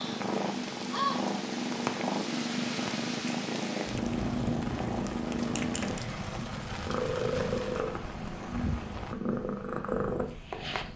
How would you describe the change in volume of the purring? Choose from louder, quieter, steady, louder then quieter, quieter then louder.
steady.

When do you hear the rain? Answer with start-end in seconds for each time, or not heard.
0.0-9.2.